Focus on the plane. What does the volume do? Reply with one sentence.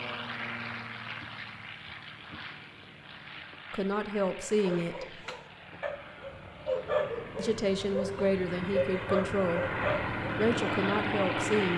The loudness of the plane goes down, then up.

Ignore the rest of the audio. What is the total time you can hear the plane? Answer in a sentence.
The plane can be heard for 12 seconds in total.